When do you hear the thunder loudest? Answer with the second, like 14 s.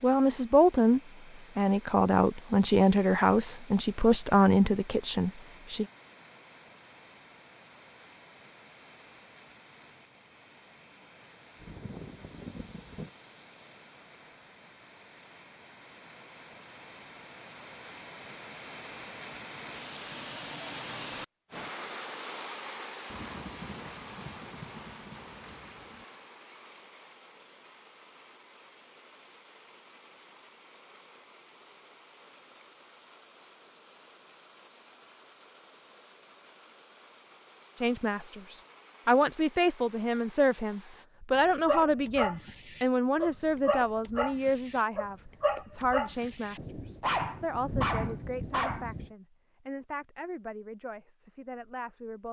48 s.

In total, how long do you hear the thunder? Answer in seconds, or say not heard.
7 s.